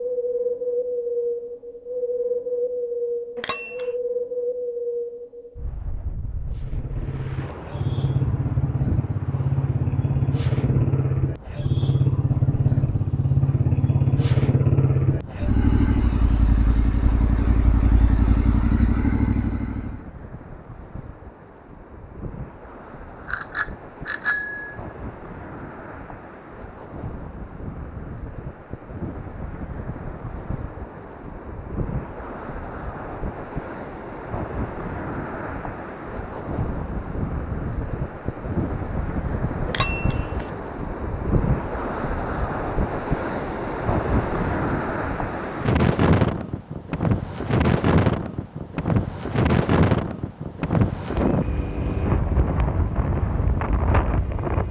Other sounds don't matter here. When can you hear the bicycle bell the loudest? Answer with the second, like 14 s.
24 s.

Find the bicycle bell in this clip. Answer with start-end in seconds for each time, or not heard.
3.4-3.9, 23.3-24.9, 39.6-40.5.